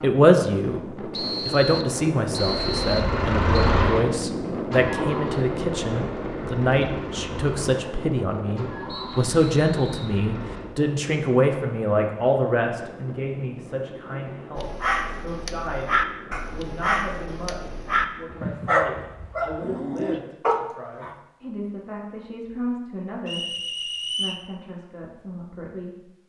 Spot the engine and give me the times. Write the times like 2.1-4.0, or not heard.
2.4-10.7.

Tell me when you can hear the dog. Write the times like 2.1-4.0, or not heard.
14.6-21.1.